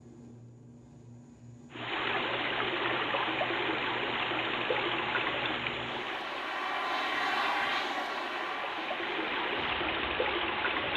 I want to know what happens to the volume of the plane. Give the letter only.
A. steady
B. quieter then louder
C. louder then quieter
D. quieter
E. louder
C.